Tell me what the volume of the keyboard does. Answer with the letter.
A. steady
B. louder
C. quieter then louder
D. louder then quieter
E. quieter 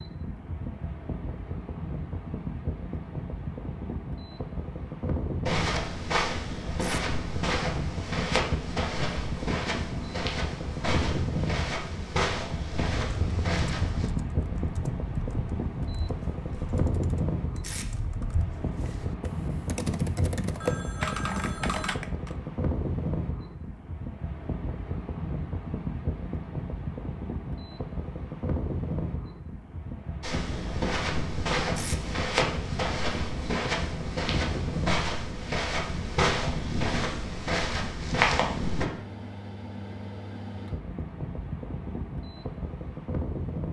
B.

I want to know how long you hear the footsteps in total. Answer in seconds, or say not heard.
17 s.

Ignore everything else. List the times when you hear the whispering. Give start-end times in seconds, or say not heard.
not heard.